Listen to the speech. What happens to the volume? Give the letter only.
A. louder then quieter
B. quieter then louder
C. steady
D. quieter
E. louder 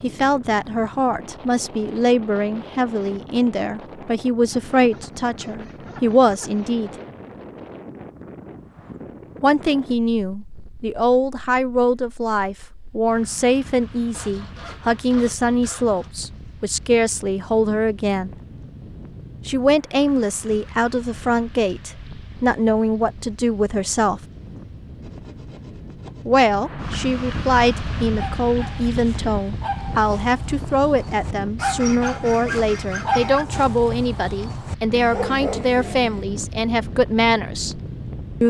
C.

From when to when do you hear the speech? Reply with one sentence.
You can hear the speech from 0.0 to 6.9 s, from 9.4 to 18.3 s, from 19.4 to 24.2 s and from 26.2 to 37.8 s.